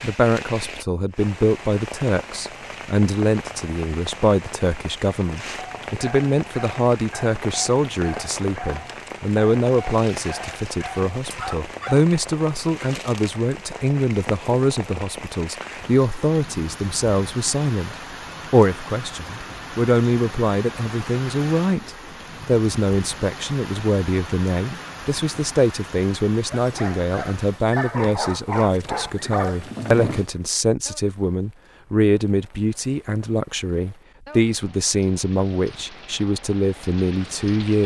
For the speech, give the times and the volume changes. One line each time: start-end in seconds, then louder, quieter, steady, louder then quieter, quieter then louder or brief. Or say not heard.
0.0-37.8 steady.